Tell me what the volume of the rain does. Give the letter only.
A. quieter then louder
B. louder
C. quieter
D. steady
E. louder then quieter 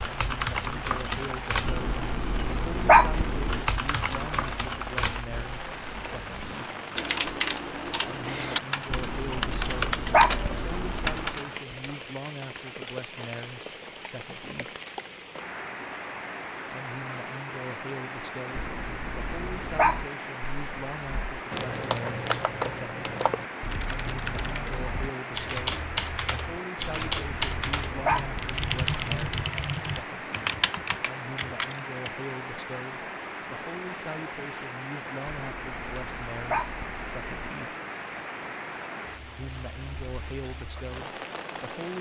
D.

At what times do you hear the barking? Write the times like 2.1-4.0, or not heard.
1.6-3.6, 8.9-11.3, 18.5-20.1, 27.0-29.5, 35.4-37.4.